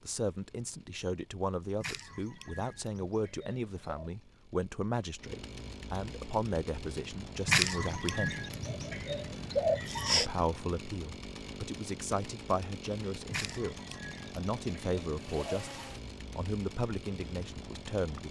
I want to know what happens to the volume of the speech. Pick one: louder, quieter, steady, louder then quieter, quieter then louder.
steady.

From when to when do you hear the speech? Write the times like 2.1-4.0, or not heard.
0.0-8.3, 10.1-18.2.